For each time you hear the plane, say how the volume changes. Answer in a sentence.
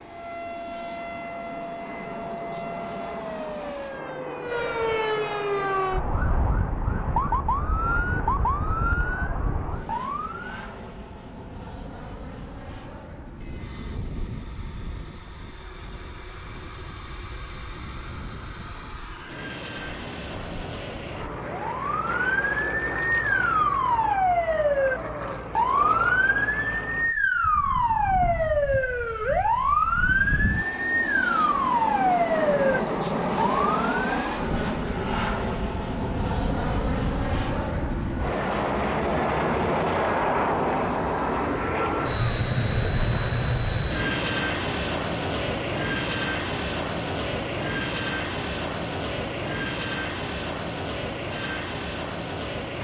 The plane can be heard from 0.0 to 52.7 s, getting louder.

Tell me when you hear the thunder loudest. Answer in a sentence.
The loudest moment of the thunder is at 43 seconds.